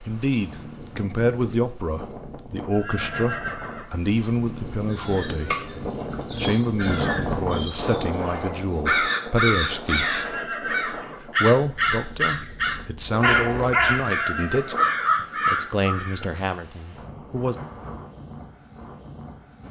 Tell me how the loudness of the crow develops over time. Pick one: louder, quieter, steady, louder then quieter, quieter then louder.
louder.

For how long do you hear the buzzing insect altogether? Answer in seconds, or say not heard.
not heard.